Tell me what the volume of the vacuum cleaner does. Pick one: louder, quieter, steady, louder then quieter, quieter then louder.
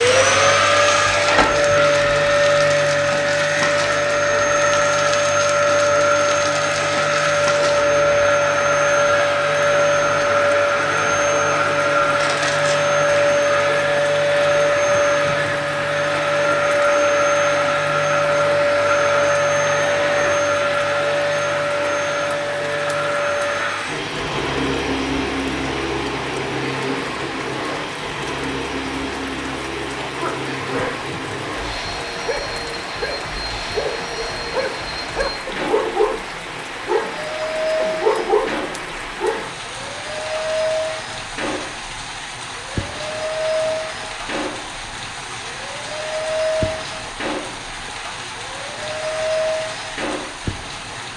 quieter.